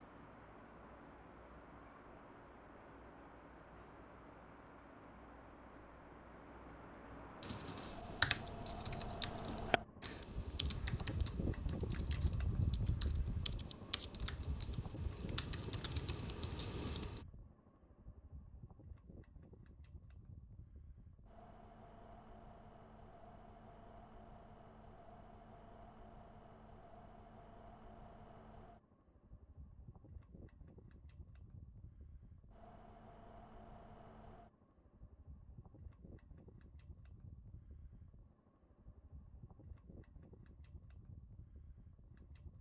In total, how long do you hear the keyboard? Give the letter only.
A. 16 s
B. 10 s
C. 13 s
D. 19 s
B.